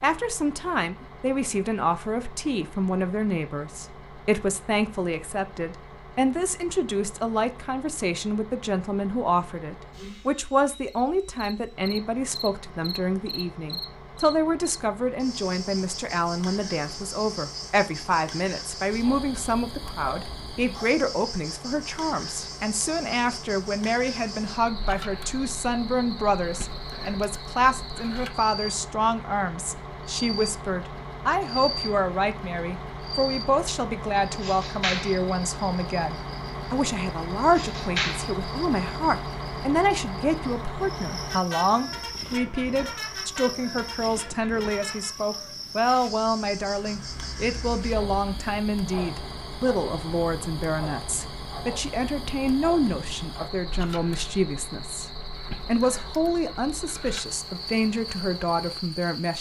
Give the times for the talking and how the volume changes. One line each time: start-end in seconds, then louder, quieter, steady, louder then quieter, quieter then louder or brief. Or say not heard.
0.0-59.3 steady.